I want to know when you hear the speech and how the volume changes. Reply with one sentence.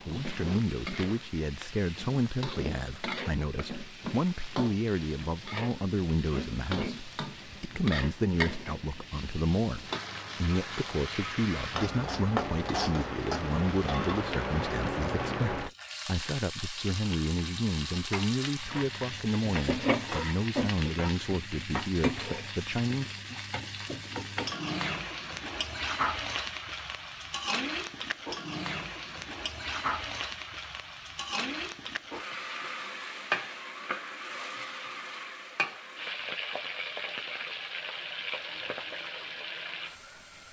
The speech can be heard from 0.1 to 23.1 s, at a steady volume.